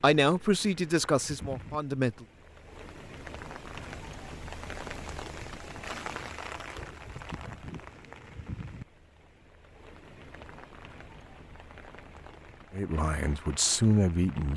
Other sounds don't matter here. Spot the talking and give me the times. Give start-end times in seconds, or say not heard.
0.0-2.2, 12.7-14.5.